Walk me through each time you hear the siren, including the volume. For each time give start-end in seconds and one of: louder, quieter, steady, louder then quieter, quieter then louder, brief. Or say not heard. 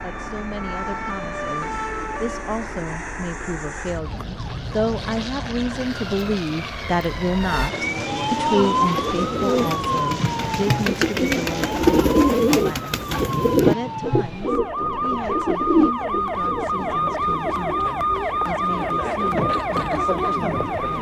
0.0-20.9 louder.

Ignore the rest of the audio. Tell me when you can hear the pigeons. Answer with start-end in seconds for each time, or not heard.
8.4-17.6.